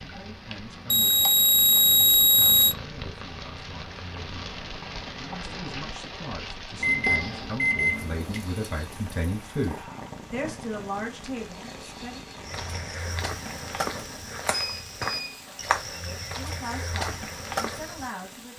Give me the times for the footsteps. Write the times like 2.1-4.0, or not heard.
12.4-18.1.